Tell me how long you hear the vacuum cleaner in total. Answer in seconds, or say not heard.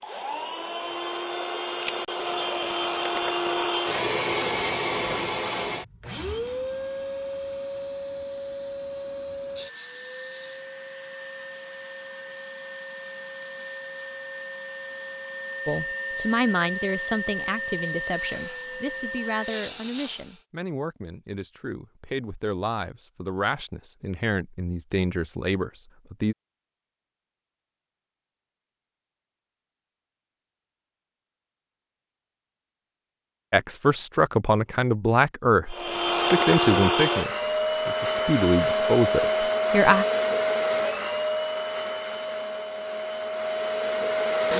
29 s.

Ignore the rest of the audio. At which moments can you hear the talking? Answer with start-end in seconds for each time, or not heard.
15.7-26.4, 33.5-40.0.